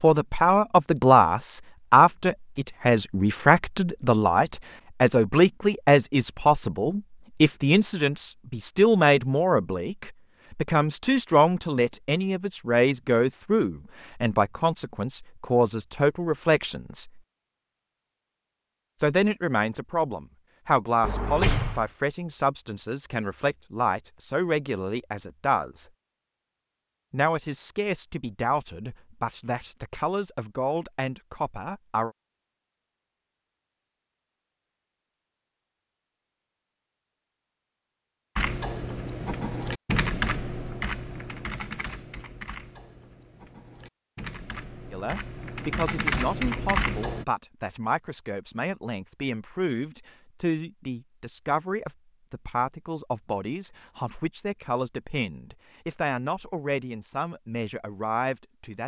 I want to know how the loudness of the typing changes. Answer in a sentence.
The volume of the typing goes down, then up.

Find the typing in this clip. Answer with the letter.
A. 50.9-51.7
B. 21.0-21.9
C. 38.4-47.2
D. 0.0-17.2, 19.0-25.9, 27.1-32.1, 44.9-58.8
C.